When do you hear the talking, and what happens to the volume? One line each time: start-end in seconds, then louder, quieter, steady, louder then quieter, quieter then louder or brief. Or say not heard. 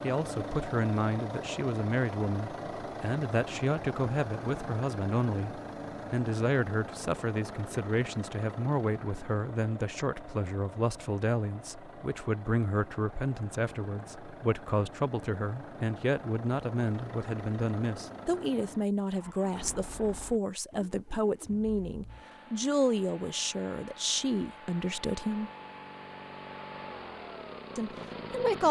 0.0-25.5 steady
27.8-28.6 brief.